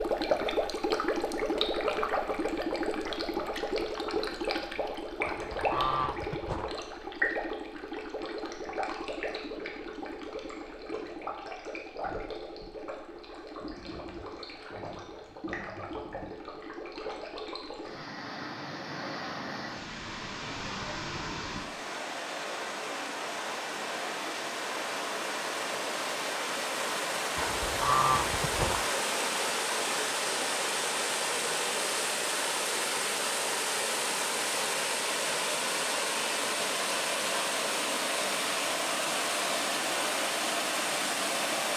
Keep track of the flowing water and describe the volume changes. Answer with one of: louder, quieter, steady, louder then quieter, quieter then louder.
quieter then louder.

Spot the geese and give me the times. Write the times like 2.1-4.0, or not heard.
5.2-6.8, 27.4-28.9.